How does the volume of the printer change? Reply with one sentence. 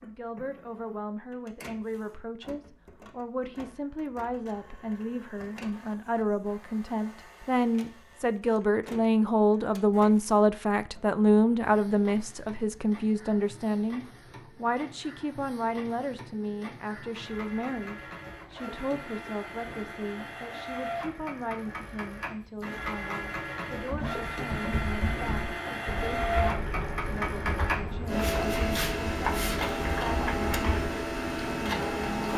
The volume of the printer goes up.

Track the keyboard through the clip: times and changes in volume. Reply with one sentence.
You can hear the keyboard from 23.9 to 30.9 s, at a steady volume.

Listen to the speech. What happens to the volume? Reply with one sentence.
The volume of the speech goes up, then down.